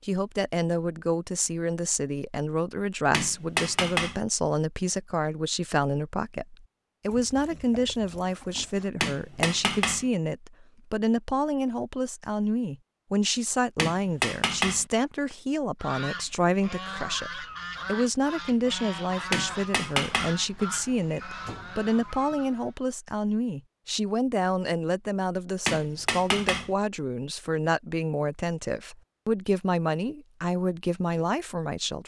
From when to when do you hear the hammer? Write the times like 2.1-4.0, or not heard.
3.1-4.2, 9.0-10.1, 13.8-14.8, 19.3-20.4, 25.6-26.8.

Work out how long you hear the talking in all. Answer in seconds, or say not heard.
32 s.